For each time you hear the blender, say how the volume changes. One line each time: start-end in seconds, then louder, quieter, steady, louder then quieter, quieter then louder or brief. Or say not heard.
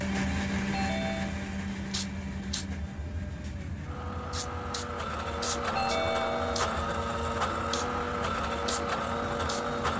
0.0-9.9 quieter then louder.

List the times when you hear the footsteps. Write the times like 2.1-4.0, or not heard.
not heard.